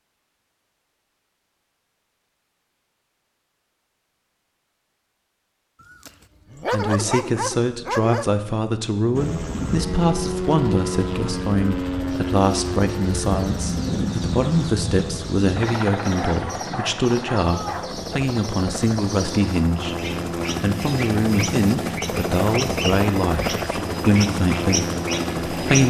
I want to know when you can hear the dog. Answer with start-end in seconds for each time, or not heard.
5.9-8.3, 16.1-18.0.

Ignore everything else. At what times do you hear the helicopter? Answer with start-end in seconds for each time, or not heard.
9.1-25.8.